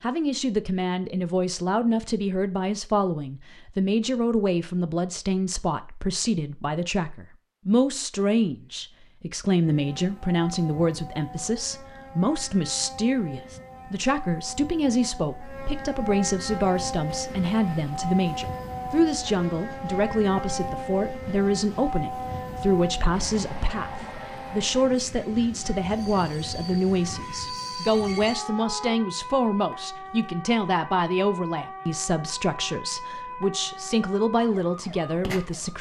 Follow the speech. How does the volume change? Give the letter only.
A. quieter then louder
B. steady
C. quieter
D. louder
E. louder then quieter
B.